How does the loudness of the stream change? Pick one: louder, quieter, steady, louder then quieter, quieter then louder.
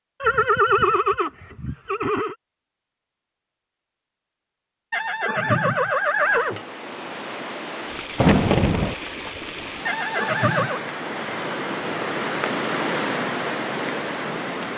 louder.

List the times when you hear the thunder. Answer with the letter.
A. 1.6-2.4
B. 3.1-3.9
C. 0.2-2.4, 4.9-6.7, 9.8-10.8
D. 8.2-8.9
D.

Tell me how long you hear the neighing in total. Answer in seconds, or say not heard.
5 s.